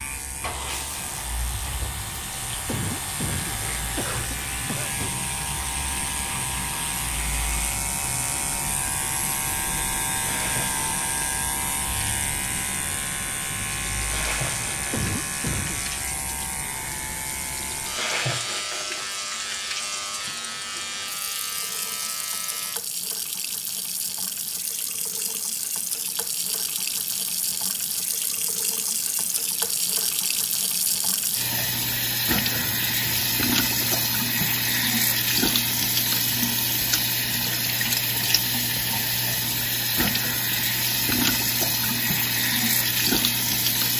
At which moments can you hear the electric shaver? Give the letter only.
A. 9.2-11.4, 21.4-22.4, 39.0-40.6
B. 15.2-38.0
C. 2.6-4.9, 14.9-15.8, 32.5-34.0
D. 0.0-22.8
D.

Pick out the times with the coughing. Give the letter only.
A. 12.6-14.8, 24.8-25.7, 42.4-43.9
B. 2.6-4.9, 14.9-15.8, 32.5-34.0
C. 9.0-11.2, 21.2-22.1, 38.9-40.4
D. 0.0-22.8
B.